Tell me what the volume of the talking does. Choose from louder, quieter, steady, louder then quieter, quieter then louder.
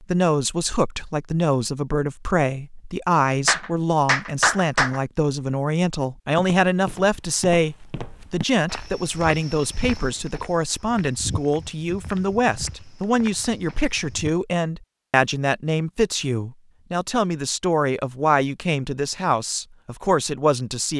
steady.